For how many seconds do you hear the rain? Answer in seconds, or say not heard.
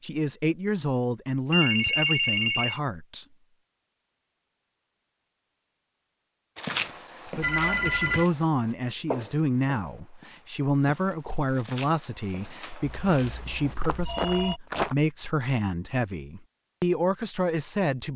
not heard.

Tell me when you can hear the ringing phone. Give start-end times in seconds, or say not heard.
1.5-2.8, 7.4-8.3, 12.8-14.6.